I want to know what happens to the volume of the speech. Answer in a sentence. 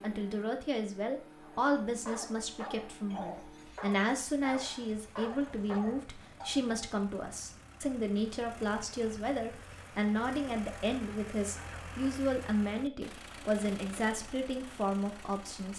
The volume of the speech stays about the same.